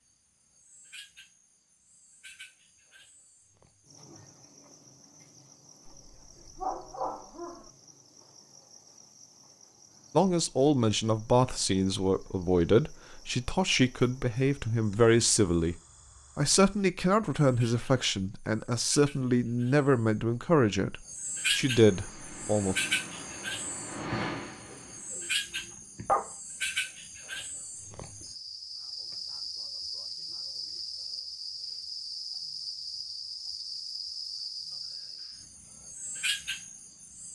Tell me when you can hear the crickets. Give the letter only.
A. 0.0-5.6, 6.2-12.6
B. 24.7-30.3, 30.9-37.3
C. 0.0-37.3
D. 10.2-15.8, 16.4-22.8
C.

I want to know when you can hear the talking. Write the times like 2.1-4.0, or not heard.
10.2-15.8, 16.4-22.8.